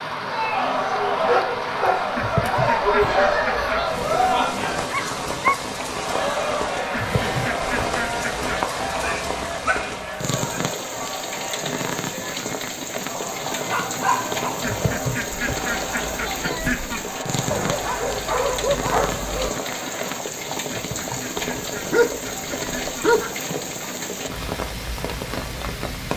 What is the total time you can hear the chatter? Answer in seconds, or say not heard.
20 s.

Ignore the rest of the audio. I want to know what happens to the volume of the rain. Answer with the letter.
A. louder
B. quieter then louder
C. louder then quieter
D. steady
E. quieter
D.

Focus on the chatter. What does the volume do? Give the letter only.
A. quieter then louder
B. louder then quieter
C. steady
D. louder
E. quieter
E.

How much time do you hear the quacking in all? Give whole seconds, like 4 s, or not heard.
9 s.